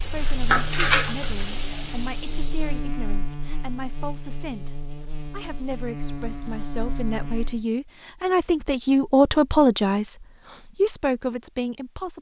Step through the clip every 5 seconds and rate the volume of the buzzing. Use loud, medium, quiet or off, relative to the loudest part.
loud, loud, off.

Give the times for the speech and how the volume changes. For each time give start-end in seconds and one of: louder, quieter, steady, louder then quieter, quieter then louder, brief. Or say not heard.
0.0-12.1 louder.